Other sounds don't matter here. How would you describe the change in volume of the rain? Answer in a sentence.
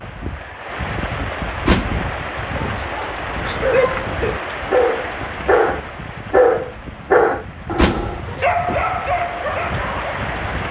The volume of the rain goes down, then up.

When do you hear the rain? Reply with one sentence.
The rain can be heard from 0.0 to 10.6 s.